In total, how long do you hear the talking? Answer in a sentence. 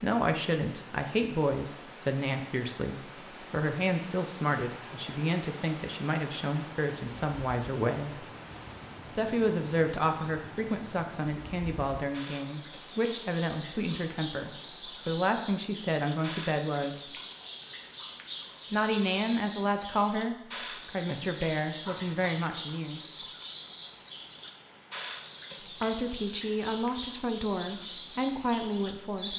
The talking can be heard for 24 seconds in total.